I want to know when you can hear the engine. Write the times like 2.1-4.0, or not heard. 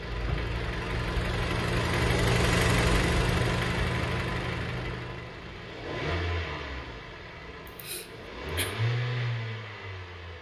0.0-10.3.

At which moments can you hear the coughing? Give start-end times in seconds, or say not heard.
7.7-8.8.